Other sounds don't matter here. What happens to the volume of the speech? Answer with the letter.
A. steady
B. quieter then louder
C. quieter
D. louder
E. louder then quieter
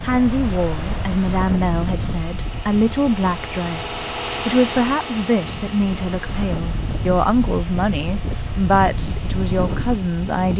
A.